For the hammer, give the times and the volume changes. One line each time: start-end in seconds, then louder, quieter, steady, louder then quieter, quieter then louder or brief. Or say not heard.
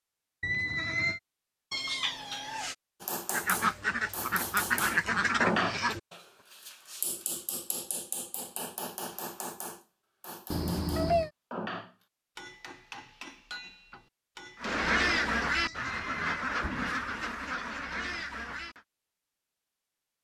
3.0-14.8 quieter.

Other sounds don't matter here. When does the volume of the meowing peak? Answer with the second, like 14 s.
11 s.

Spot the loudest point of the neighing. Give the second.
1 s.